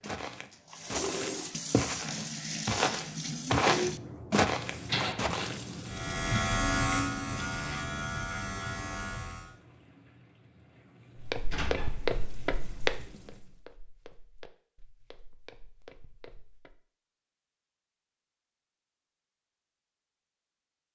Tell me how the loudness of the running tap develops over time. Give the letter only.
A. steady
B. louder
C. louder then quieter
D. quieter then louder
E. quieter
E.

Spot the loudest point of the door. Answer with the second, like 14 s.
5 s.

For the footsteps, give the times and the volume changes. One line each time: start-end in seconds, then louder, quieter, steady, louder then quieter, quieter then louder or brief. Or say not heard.
0.0-5.6 louder
11.2-16.8 quieter then louder.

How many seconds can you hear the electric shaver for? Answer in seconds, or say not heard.
4 s.